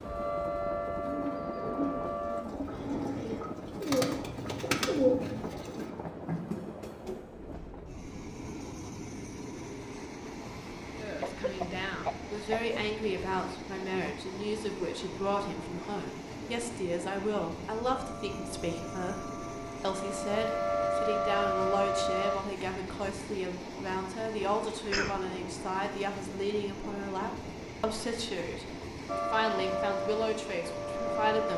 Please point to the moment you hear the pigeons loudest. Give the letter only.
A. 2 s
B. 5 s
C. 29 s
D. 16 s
B.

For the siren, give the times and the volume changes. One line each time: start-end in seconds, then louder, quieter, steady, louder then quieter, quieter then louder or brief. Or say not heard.
0.0-2.5 brief
17.9-22.4 louder
29.1-31.5 brief.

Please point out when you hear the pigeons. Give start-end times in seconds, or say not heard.
1.0-6.7.